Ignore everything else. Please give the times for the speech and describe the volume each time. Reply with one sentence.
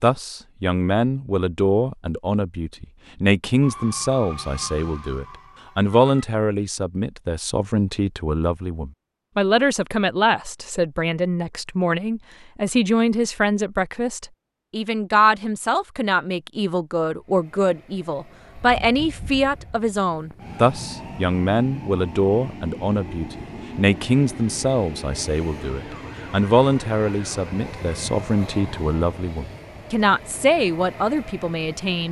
The speech can be heard from 0.0 to 32.0 s, at a steady volume.